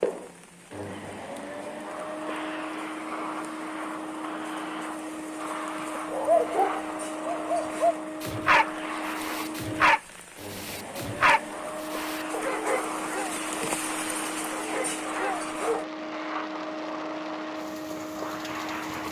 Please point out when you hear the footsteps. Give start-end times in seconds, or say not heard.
not heard.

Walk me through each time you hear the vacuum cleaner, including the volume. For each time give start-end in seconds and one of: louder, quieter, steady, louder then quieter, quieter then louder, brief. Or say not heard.
0.0-19.0 steady.